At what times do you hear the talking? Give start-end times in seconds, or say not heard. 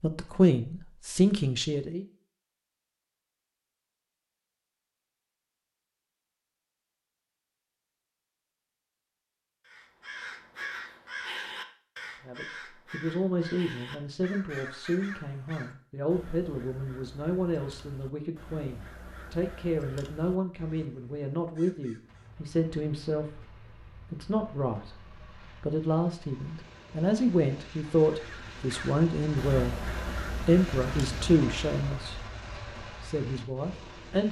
0.0-2.0, 12.2-29.8, 30.4-32.1, 33.0-34.2.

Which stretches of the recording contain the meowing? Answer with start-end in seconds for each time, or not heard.
not heard.